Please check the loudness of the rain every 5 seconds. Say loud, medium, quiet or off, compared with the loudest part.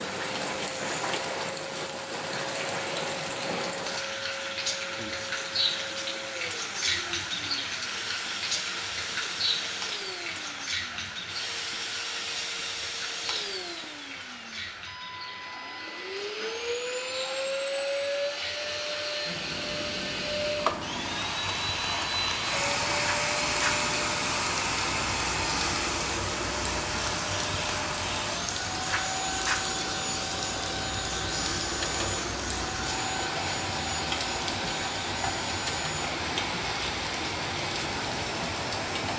loud, loud, medium, medium, loud, loud, loud, loud.